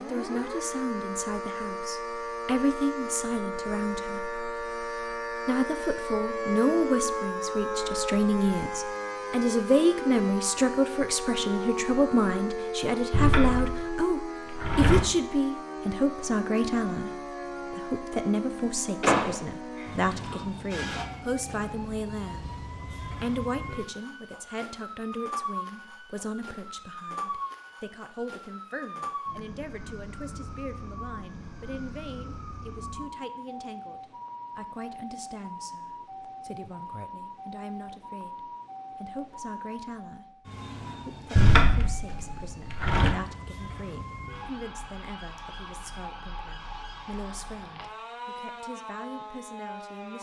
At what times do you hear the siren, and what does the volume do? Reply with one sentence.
The siren can be heard from 0.0 to 50.1 s, getting quieter.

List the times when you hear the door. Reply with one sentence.
You can hear the door from 13.1 to 15.0 s, from 19.0 to 20.4 s and from 41.4 to 43.1 s.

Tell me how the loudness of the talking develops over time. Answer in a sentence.
The volume of the talking goes down.